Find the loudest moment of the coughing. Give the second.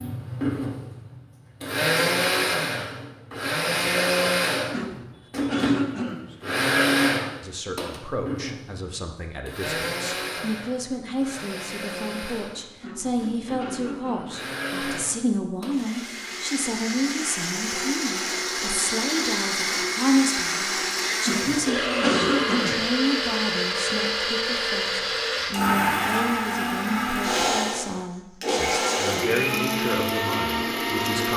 22 s.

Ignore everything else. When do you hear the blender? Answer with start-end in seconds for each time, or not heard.
0.0-31.3.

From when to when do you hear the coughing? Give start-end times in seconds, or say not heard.
4.7-6.4, 12.8-14.5, 21.2-22.9.